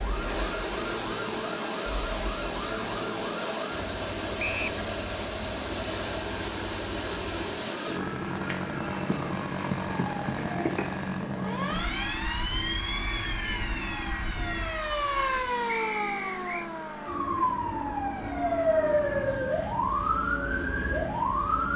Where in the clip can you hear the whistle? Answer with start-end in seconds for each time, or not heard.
4.3-4.8, 15.7-16.7.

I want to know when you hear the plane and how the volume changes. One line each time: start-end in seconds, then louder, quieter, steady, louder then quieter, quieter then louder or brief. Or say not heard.
0.0-21.7 quieter.